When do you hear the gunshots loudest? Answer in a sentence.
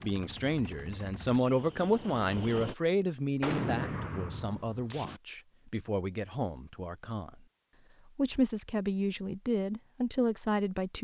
The loudest moment of the gunshots is at 4 seconds.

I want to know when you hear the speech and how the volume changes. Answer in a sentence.
You can hear the speech from 0.0 to 7.4 s, getting quieter; and briefly from 8.2 to 10.9 s.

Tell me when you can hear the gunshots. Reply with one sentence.
The gunshots can be heard from 3.4 to 5.2 s.